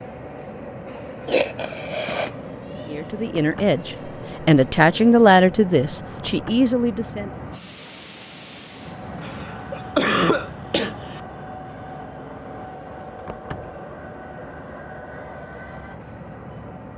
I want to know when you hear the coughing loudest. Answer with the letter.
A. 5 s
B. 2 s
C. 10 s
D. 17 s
C.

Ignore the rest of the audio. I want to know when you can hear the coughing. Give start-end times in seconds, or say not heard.
1.2-2.4, 9.2-11.2.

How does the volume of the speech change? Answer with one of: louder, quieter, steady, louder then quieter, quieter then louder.
louder then quieter.